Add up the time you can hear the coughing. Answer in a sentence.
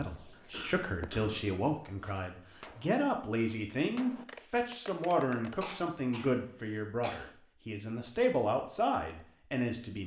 You can hear the coughing for 3 seconds altogether.